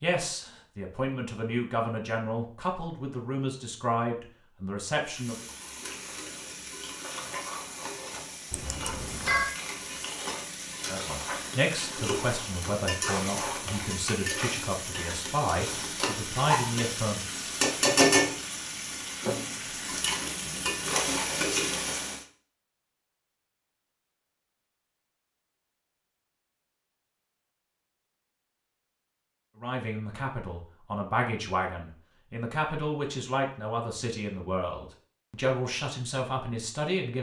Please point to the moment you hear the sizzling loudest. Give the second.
18 s.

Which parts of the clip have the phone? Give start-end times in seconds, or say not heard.
8.5-9.6.